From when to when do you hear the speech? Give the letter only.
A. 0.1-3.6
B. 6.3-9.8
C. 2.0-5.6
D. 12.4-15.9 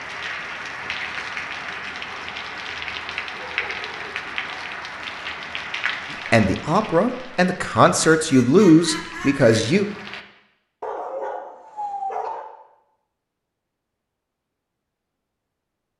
B.